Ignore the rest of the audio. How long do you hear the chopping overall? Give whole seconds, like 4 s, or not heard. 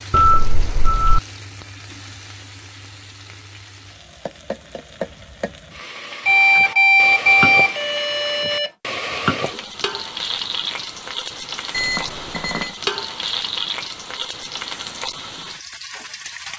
not heard.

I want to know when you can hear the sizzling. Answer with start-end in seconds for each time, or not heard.
0.0-16.5.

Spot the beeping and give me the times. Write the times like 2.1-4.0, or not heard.
0.1-1.2, 6.2-8.7, 11.7-12.8.